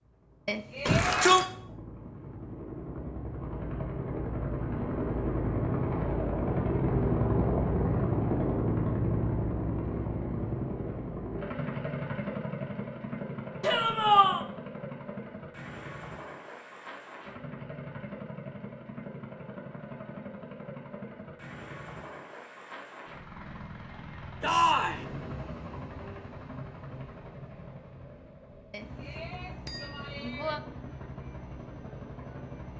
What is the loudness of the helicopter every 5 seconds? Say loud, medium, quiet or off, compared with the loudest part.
medium, loud, medium, quiet, quiet, quiet, quiet.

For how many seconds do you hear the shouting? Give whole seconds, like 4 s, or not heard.
2 s.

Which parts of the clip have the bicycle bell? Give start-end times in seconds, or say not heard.
0.5-1.2, 28.7-30.6.